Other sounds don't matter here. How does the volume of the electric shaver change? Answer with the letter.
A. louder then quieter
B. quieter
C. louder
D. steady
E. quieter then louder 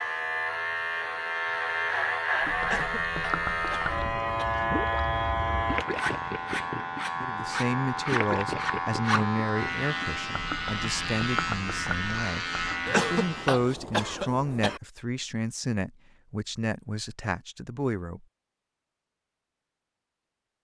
D.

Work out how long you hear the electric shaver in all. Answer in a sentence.
The electric shaver can be heard for 14 seconds in total.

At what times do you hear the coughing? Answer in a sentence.
You can hear the coughing from 2.6 to 4.5 s and from 12.8 to 14.8 s.